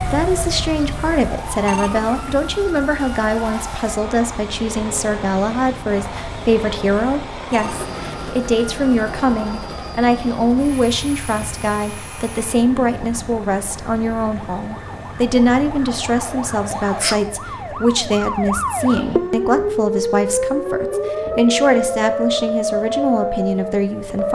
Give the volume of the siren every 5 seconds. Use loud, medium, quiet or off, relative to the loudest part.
medium, quiet, quiet, loud, loud.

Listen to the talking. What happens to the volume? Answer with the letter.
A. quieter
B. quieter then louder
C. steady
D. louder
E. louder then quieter
C.